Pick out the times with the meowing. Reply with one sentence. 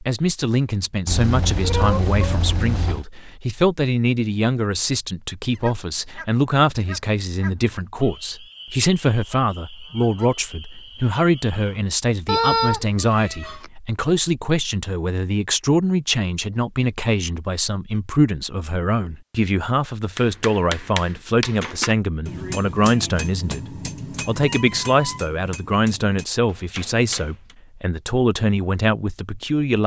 You can hear the meowing from 1.1 to 3.0 s, from 12.2 to 13.7 s and from 23.9 to 25.2 s.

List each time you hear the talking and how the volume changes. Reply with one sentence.
You can hear the talking from 0.0 to 29.8 s, at a steady volume.